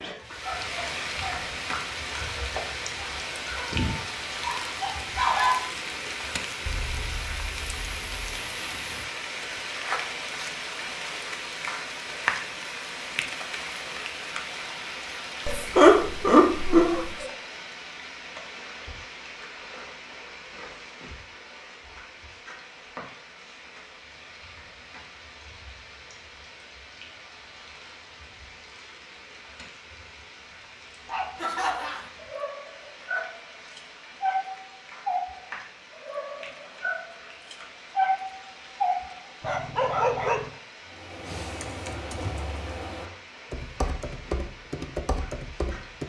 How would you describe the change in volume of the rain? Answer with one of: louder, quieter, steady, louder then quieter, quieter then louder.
quieter.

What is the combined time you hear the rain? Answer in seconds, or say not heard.
46 s.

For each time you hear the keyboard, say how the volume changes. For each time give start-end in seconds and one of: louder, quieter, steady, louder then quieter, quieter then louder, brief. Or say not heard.
40.9-46.0 steady.